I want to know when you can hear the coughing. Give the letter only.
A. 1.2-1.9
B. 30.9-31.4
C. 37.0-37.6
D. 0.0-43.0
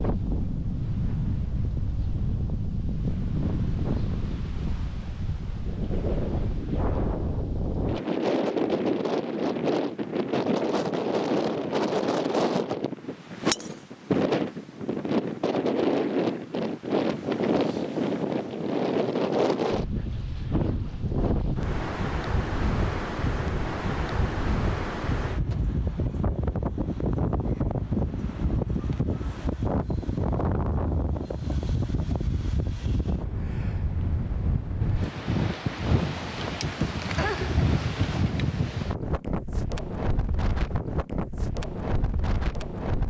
C.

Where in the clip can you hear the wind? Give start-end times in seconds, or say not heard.
0.0-43.0.